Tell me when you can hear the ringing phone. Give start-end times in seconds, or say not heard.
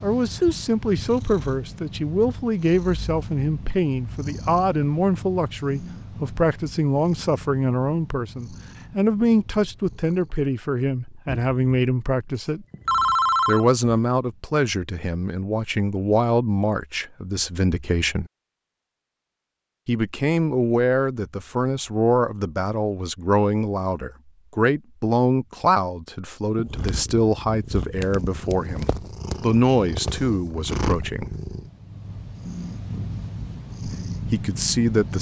12.3-13.7.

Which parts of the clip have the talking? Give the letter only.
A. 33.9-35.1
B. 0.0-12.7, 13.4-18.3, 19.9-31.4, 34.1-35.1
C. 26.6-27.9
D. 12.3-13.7
B.